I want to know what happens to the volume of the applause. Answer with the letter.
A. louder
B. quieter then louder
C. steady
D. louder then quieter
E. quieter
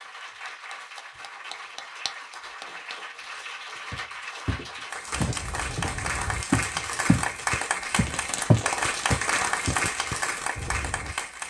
A.